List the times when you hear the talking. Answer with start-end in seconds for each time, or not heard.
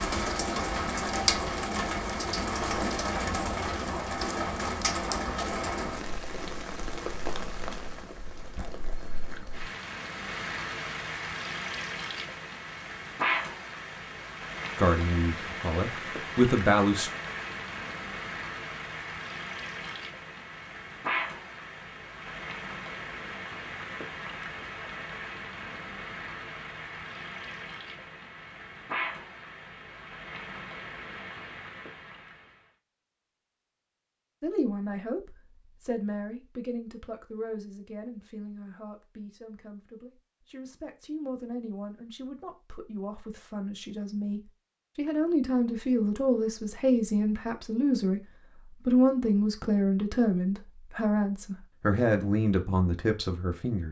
14.8-17.1, 34.4-53.8.